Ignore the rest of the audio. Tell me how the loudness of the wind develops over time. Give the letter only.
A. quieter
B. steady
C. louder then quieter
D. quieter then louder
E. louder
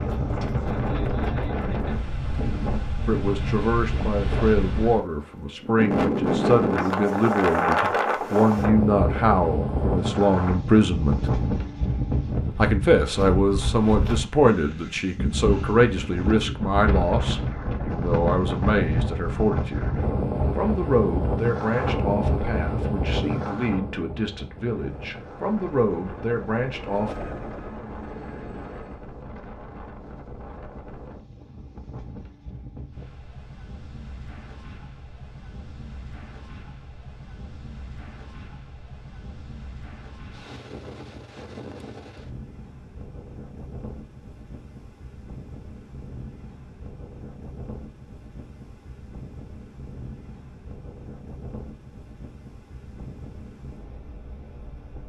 A.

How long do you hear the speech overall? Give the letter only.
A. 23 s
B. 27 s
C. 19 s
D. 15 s
A.